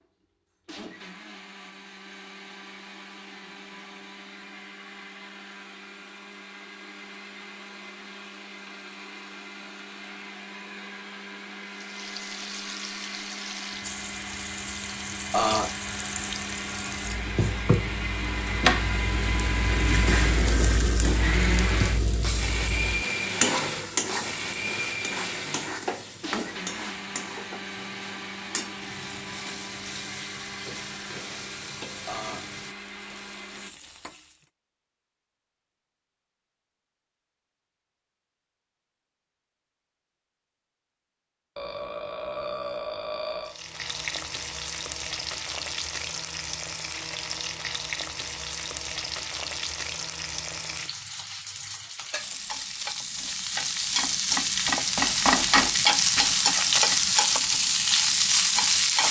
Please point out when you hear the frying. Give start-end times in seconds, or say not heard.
11.7-34.5, 43.5-59.0.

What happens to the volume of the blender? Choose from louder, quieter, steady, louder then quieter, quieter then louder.
louder then quieter.